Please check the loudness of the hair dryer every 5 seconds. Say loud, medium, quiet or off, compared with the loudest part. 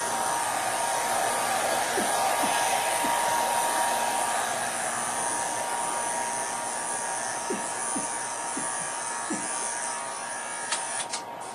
loud, medium, medium.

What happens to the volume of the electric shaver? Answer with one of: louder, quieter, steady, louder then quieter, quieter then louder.
steady.